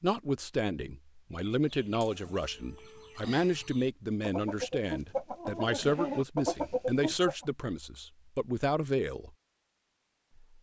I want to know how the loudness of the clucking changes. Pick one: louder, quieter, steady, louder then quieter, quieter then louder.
louder.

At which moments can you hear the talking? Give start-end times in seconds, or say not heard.
0.0-9.3.